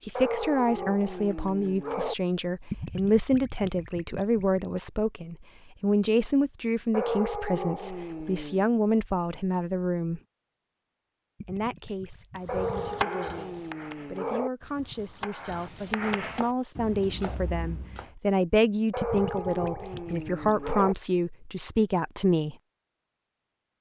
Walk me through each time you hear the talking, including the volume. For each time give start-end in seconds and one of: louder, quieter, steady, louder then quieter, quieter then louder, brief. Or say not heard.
0.1-10.2 steady
11.4-22.6 louder.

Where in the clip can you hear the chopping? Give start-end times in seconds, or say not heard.
12.4-18.1.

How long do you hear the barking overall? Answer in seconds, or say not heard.
8 s.